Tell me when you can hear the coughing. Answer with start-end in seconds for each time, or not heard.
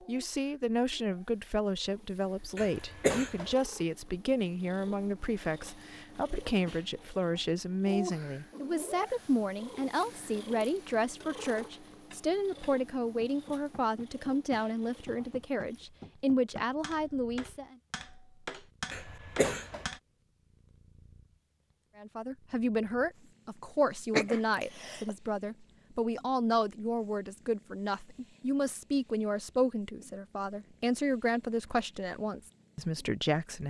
2.5-3.5, 18.9-19.9, 24.1-25.1.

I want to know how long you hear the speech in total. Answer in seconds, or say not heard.
29 s.